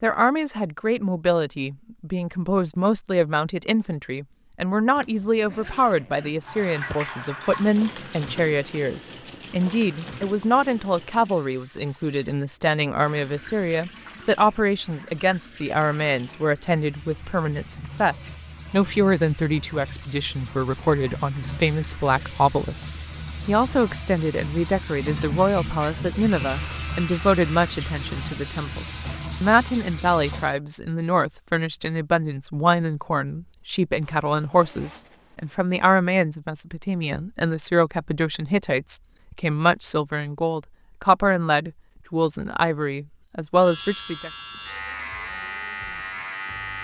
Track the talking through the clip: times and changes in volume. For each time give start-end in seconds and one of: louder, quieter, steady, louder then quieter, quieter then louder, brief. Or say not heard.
0.0-44.3 steady.